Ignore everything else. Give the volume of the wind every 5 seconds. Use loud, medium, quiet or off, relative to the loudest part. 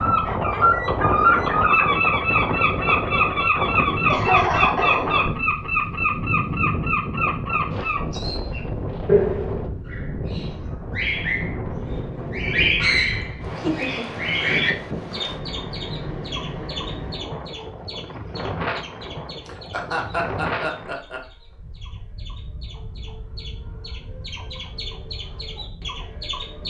loud, loud, medium, medium, medium, quiet.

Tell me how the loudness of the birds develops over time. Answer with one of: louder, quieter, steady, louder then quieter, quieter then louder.
quieter.